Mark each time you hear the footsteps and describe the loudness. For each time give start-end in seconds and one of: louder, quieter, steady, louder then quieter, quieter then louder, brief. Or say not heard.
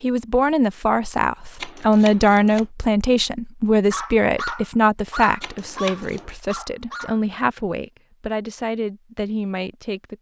not heard.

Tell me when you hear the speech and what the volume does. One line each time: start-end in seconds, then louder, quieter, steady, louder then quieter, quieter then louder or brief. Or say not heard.
0.0-10.1 quieter.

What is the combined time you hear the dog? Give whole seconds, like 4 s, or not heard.
3 s.